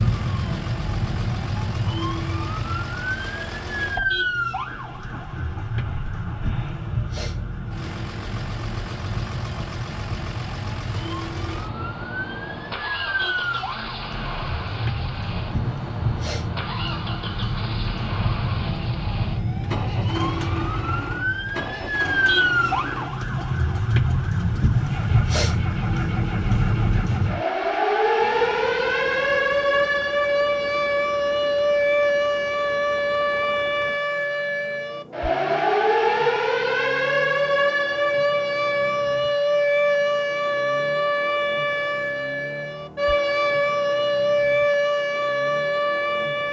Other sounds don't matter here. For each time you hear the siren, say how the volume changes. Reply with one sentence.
The siren can be heard from 0.0 to 46.4 s, getting louder.